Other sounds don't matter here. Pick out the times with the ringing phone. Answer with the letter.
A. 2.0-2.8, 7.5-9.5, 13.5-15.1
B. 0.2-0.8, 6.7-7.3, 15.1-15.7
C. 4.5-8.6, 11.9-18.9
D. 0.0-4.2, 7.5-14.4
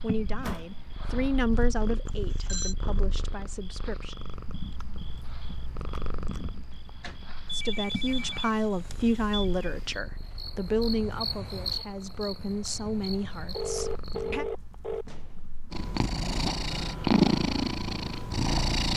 A.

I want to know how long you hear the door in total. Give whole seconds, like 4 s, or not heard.
2 s.